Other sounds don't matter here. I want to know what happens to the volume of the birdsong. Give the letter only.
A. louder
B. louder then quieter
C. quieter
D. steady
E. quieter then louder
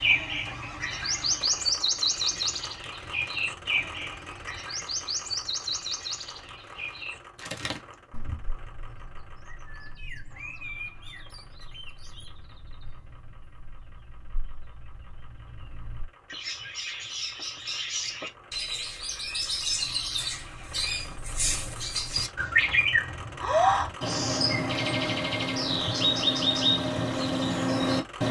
E.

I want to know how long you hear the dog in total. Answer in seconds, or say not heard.
not heard.